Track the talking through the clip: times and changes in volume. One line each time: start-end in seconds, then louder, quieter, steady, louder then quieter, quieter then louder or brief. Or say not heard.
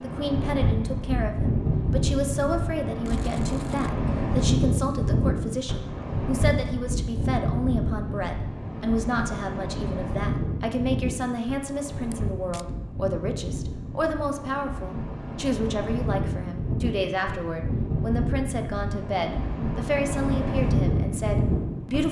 0.0-22.0 steady.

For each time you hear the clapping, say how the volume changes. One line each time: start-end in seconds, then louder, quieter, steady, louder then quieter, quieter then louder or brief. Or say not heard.
not heard.